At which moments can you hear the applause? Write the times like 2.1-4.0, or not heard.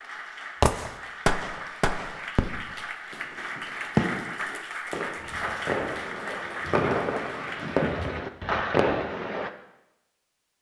0.0-8.2.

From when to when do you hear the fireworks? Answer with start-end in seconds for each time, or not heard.
0.6-9.5.